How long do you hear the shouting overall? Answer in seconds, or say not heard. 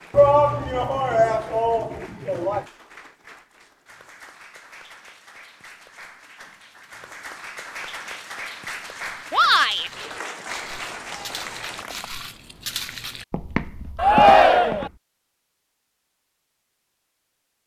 4 s.